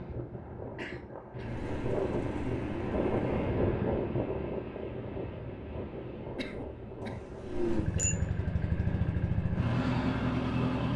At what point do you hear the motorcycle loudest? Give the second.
10 s.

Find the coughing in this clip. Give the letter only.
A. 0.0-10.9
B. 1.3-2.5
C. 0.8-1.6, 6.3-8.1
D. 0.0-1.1
C.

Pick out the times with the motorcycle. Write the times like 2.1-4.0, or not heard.
1.4-3.5, 7.4-10.9.